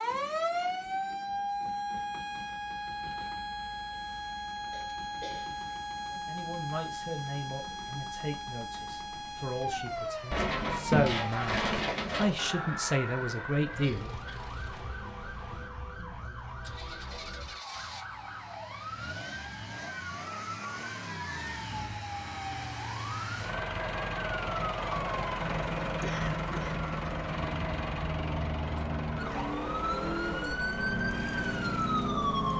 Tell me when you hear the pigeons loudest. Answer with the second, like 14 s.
11 s.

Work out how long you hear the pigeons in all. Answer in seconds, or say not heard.
2 s.